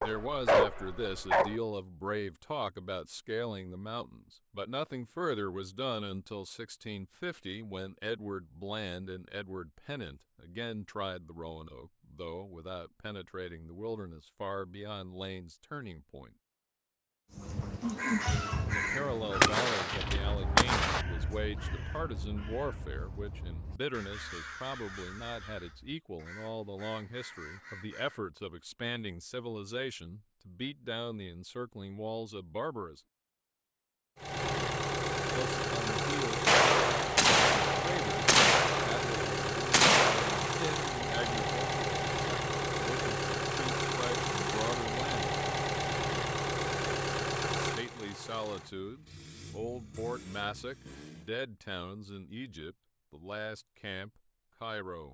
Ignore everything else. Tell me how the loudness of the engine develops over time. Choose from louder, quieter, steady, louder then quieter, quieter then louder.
quieter.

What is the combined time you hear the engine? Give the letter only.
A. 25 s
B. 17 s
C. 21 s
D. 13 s
B.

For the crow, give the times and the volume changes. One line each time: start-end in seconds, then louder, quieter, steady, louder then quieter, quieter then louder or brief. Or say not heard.
17.3-28.2 quieter.